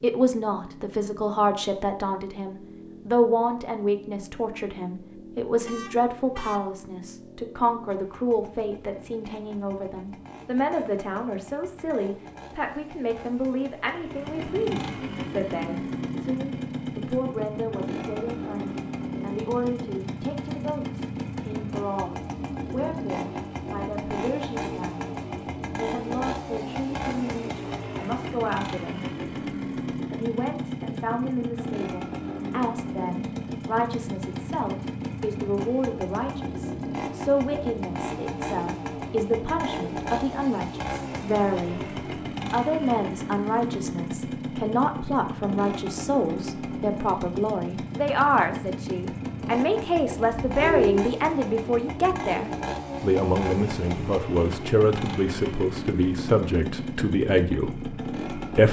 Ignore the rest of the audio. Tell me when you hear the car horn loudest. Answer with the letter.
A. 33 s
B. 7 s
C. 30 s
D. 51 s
D.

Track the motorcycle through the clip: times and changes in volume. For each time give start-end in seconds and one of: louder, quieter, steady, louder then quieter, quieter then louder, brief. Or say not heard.
0.0-58.6 louder.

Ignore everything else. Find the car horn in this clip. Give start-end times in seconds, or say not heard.
5.7-6.6, 50.4-51.0.